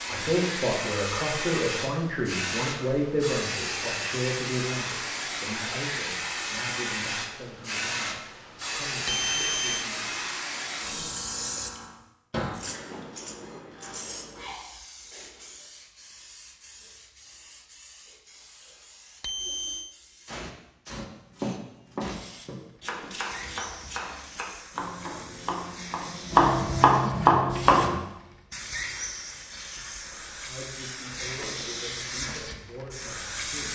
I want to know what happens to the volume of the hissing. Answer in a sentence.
The loudness of the hissing goes down, then up.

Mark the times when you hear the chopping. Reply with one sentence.
You can hear the chopping from 20.9 to 28.0 s.